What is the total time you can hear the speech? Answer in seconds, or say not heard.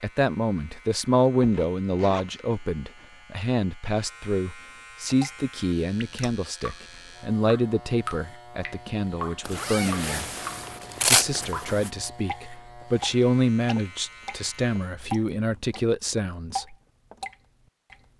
16 s.